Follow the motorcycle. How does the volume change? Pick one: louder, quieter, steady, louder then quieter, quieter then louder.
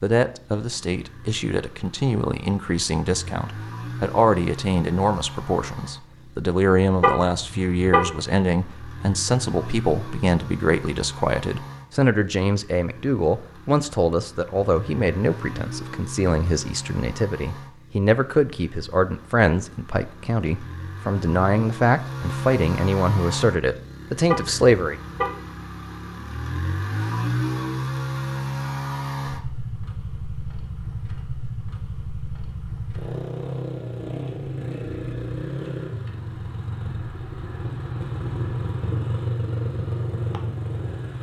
louder.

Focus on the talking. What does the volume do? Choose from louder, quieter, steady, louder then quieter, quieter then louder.
steady.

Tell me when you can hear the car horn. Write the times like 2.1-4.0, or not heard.
7.0-8.2, 24.2-25.5.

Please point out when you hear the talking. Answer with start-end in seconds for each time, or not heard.
0.0-25.0.